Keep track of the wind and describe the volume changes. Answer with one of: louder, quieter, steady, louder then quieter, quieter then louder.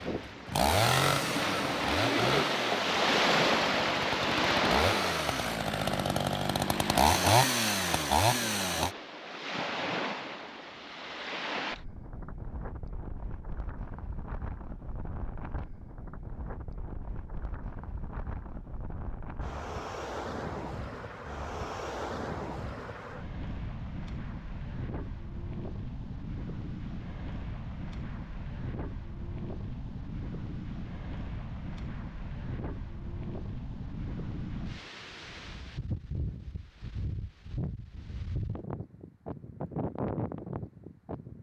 quieter.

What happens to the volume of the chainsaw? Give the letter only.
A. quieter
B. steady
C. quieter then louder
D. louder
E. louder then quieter
C.